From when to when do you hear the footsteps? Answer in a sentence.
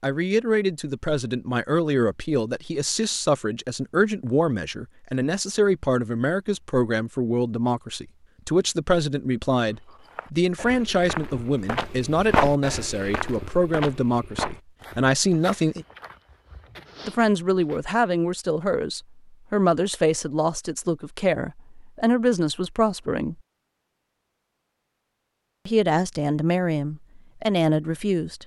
The footsteps can be heard from 9.7 to 17.8 s.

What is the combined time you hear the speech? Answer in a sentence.
You can hear the speech for 25 seconds altogether.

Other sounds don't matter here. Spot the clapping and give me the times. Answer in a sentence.
The clapping can't be heard in this clip.